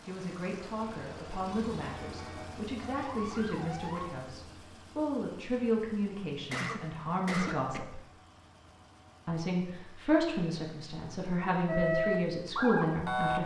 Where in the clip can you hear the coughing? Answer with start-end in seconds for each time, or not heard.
6.5-7.8.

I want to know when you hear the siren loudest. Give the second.
12 s.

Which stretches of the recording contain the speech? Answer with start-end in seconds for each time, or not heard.
0.0-8.0, 9.2-13.4.